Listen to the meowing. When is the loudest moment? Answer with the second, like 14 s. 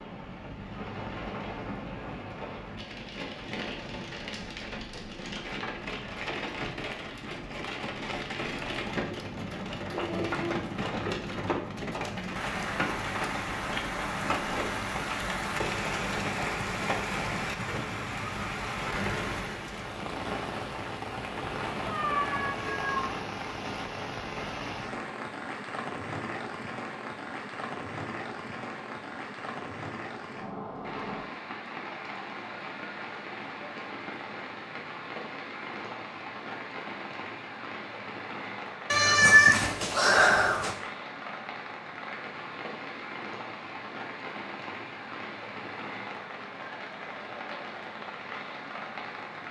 39 s.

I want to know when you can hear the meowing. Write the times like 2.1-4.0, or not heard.
9.9-10.8, 21.9-23.1, 38.9-40.8.